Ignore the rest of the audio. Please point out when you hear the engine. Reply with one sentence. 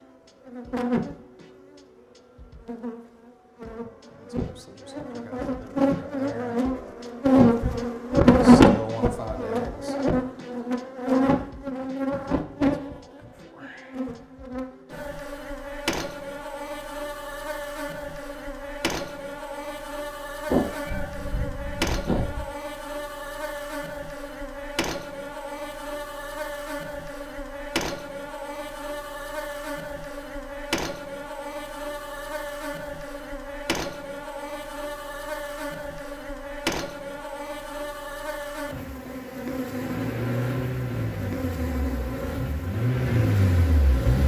You can hear the engine from 39.6 to 44.2 s.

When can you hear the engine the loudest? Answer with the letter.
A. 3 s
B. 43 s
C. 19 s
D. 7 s
B.